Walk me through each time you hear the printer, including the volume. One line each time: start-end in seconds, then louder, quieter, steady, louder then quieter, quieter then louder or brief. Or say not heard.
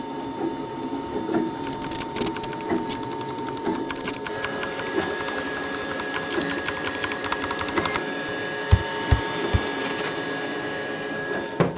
0.0-11.7 steady.